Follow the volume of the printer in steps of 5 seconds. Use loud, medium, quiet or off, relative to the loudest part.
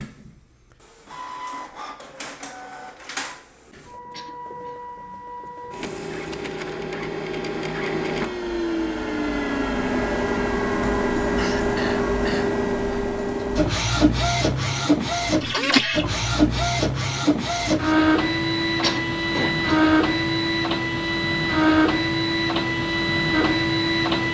quiet, medium, loud, loud, loud.